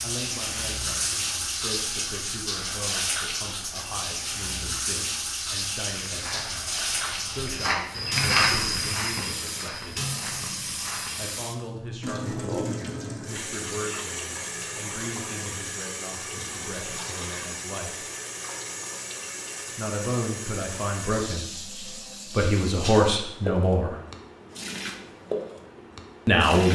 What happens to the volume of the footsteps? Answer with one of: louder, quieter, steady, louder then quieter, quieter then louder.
louder then quieter.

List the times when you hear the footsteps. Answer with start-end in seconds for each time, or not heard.
6.0-11.4.